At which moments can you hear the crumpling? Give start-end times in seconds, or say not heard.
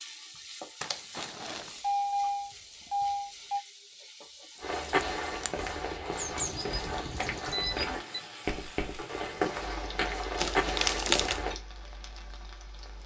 0.8-1.8, 4.5-5.7, 10.3-11.4.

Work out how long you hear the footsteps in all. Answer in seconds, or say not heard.
7 s.